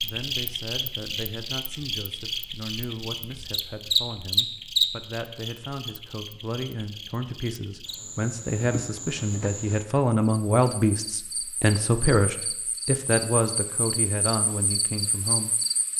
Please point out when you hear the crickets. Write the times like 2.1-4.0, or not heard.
0.0-15.9.